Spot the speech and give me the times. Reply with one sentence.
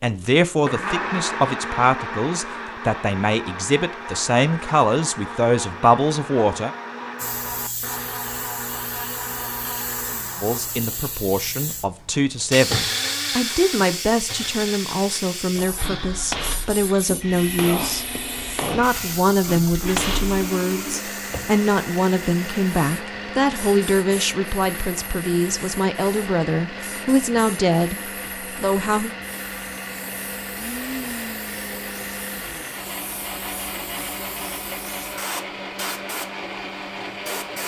The speech can be heard from 0.0 to 6.7 s, from 10.4 to 18.1 s and from 18.7 to 29.1 s.